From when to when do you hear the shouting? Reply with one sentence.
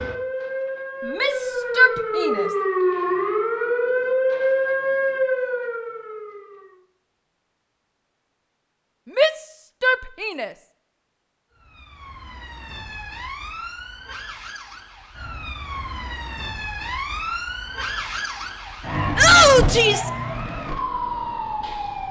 The shouting can be heard from 1.1 to 2.5 s, from 9.2 to 10.5 s and from 19.1 to 20.1 s.